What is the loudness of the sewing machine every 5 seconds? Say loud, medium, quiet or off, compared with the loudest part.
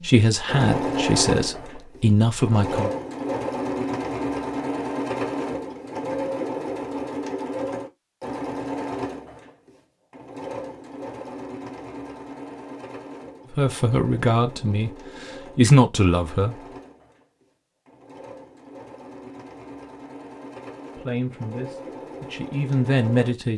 loud, loud, medium, quiet, medium.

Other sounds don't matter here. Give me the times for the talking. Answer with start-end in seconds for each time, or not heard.
0.0-2.9, 13.5-16.6, 20.9-23.5.